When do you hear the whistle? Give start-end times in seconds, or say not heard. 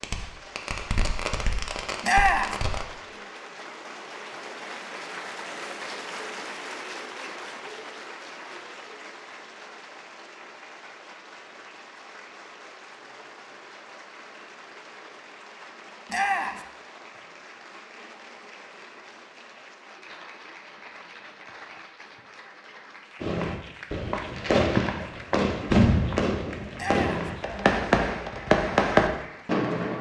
not heard.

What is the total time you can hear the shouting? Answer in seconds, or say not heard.
2 s.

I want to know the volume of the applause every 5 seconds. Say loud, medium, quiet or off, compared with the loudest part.
loud, loud, medium, medium, medium, medium.